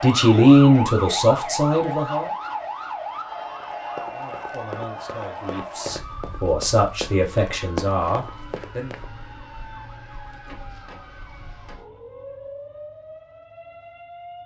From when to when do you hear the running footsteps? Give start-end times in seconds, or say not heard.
3.6-9.1.